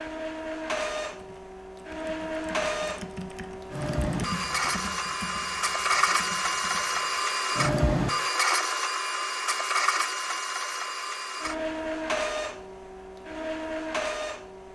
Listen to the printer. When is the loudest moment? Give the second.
8 s.